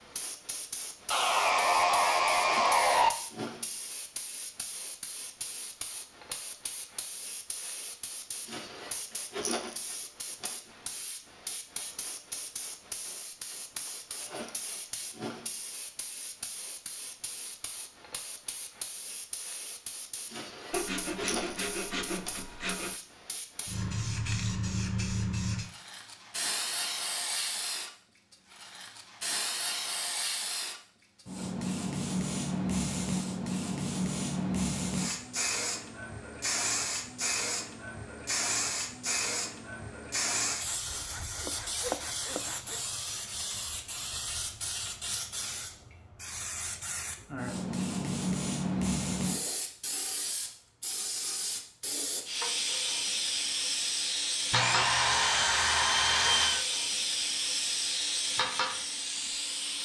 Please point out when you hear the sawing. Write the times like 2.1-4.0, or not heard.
1.1-3.1, 20.7-22.9, 40.6-42.8, 54.5-56.6.